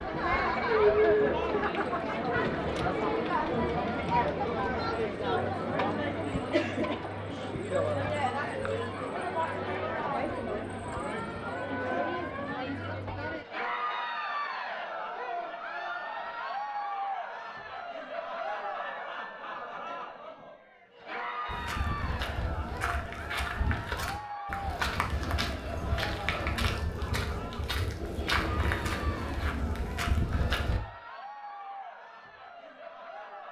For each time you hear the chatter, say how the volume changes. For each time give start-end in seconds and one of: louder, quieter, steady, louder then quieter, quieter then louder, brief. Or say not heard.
0.0-33.4 quieter.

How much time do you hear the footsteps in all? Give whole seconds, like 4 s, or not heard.
9 s.